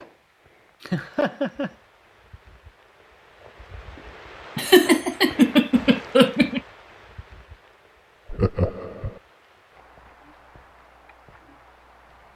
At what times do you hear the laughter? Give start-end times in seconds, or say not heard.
0.8-1.7, 4.5-6.6, 8.3-9.2.